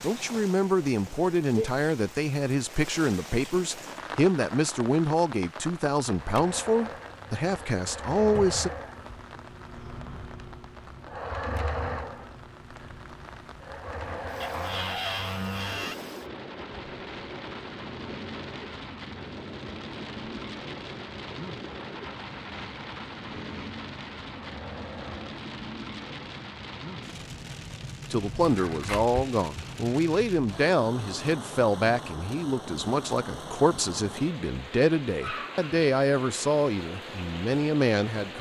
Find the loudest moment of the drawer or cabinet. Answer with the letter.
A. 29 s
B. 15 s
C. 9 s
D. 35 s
B.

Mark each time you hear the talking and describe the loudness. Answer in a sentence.
You can hear the talking from 0.0 to 8.7 s, at a steady volume; and from 28.1 to 38.3 s, at a steady volume.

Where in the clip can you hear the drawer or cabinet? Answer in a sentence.
The drawer or cabinet can be heard from 8.3 to 8.8 s, from 14.4 to 15.9 s and from 28.4 to 29.1 s.